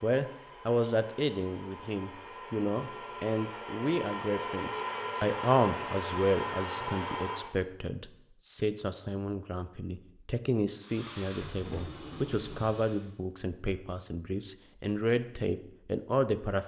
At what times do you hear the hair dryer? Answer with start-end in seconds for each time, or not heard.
0.0-7.5, 10.8-13.1.